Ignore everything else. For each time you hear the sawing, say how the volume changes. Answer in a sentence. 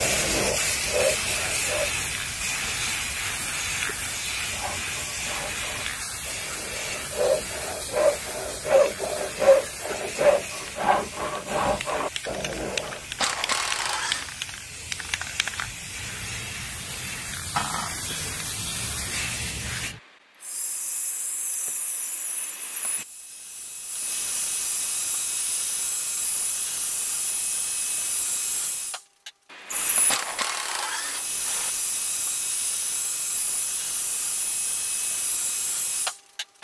The sawing can be heard briefly from 0.0 to 1.9 s; and from 4.5 to 12.8 s, getting louder then quieter.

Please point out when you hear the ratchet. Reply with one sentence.
You can hear the ratchet from 12.8 to 14.3 s and from 29.7 to 31.7 s.